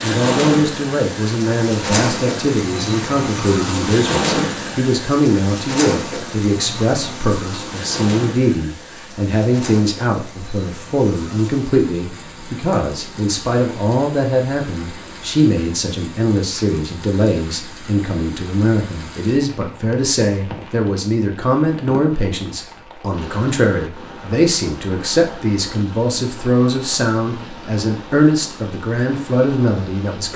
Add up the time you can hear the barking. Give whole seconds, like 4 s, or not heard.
not heard.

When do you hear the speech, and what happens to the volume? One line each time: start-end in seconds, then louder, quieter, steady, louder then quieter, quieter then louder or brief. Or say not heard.
0.0-30.3 steady.